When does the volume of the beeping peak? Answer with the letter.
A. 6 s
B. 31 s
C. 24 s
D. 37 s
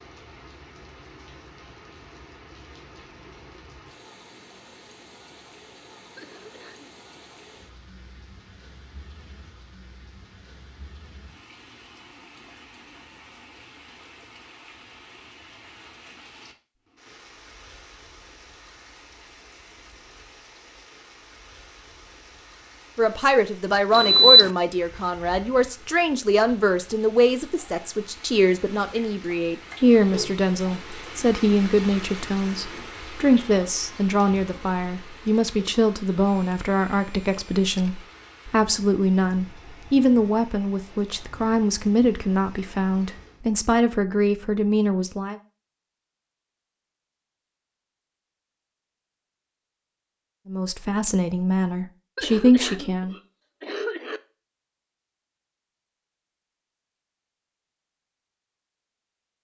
C.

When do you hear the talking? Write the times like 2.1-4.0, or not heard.
22.9-45.4, 50.5-53.1.